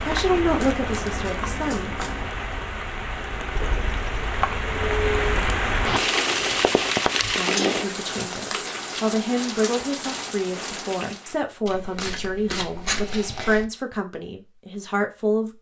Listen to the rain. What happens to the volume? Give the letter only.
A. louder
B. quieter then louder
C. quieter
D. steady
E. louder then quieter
E.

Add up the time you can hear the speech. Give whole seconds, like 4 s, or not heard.
10 s.